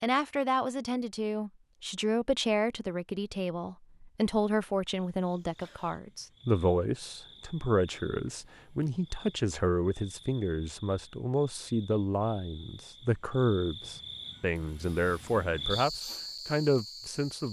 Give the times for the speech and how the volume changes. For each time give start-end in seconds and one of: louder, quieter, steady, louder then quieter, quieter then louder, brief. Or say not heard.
0.0-17.4 steady.